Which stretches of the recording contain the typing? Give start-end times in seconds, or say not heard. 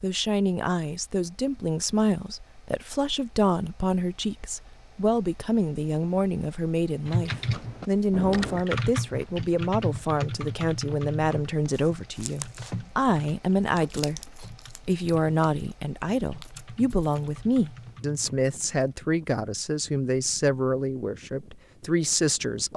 7.0-18.9.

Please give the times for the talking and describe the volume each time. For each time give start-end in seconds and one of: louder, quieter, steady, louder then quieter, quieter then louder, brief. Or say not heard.
0.0-22.7 steady.